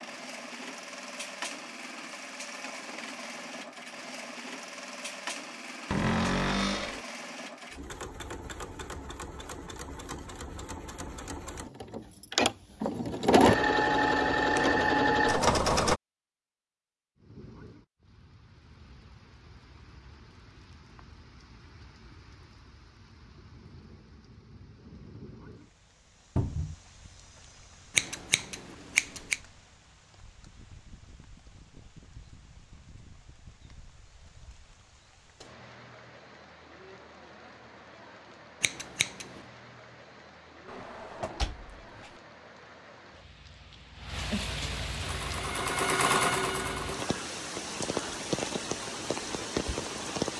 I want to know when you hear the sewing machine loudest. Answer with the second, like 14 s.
14 s.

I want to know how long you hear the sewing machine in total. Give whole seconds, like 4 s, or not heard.
18 s.